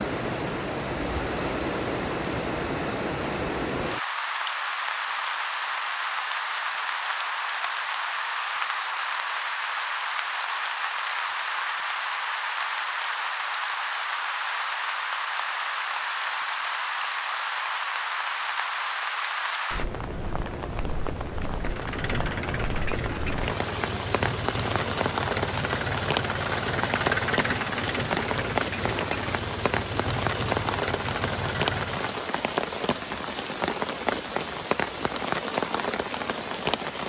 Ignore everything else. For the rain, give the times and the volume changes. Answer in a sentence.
The rain can be heard from 0.0 to 37.0 s, at a steady volume.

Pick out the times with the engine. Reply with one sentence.
The engine can be heard from 21.6 to 32.3 s.